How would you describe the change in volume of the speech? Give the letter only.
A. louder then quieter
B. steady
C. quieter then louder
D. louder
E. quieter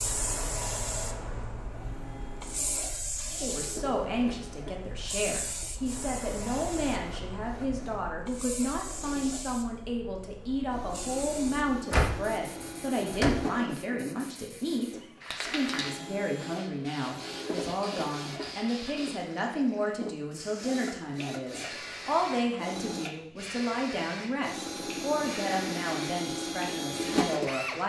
B.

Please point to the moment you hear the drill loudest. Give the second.
27 s.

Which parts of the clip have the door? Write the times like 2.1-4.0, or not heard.
11.9-13.4.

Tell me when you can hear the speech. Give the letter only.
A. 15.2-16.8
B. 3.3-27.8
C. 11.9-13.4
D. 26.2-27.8
B.